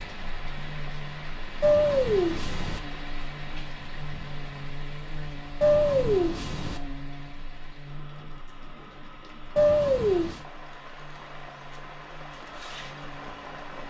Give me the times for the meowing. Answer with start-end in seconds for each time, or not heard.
1.6-2.8, 5.6-6.8, 9.6-10.4.